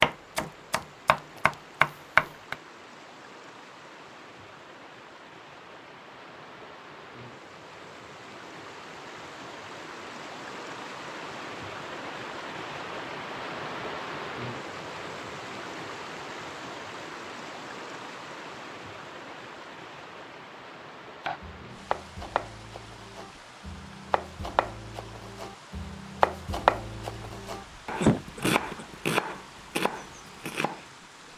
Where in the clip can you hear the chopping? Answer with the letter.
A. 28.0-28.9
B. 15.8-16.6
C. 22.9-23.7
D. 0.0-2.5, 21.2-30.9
D.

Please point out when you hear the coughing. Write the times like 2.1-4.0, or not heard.
28.0-28.9.